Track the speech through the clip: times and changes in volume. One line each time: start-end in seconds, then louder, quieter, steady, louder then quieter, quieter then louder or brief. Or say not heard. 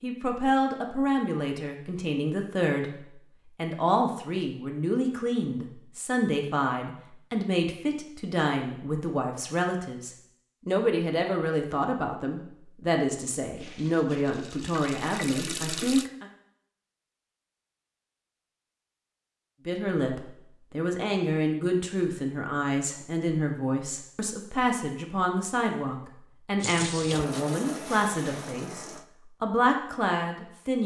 0.0-16.2 steady
19.6-30.8 steady.